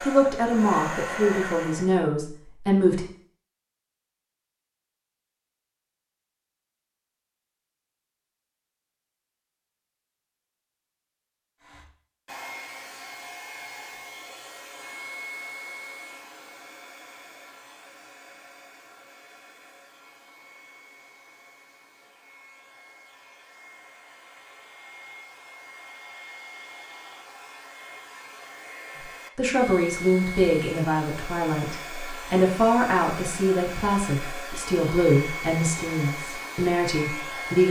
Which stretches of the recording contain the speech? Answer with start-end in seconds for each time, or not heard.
0.0-3.0, 29.4-37.6.